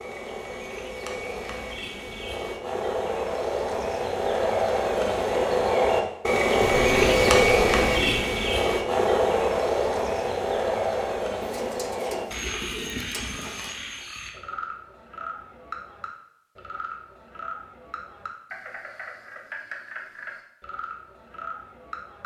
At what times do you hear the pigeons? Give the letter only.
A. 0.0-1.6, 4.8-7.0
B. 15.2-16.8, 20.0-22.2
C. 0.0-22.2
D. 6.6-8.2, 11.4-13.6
D.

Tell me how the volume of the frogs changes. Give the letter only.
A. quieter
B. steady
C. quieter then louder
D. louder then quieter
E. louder
D.